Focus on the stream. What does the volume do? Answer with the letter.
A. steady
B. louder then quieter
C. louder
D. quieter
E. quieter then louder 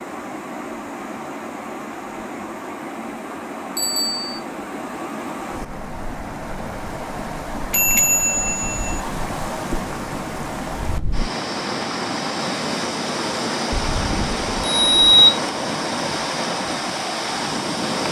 C.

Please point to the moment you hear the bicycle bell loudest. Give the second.
15 s.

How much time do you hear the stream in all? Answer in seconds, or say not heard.
18 s.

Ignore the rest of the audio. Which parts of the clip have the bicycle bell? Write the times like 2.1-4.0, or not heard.
3.8-4.4, 7.7-9.0, 13.7-15.3.